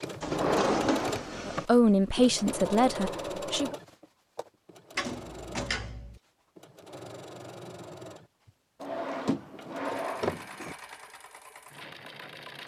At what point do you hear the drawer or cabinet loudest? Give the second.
1 s.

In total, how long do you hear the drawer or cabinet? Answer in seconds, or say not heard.
5 s.